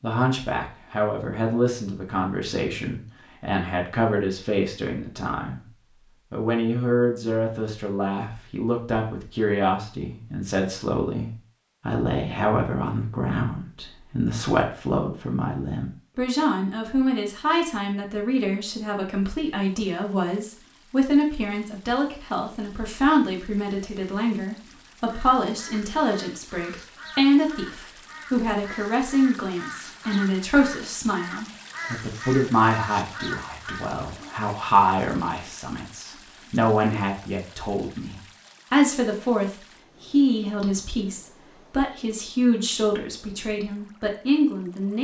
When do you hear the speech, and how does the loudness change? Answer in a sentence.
You can hear the speech from 0.0 to 44.9 s, at a steady volume.